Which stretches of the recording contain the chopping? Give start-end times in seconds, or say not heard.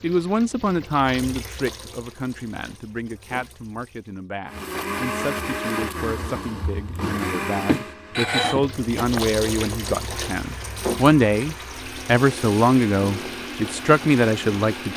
7.7-9.2.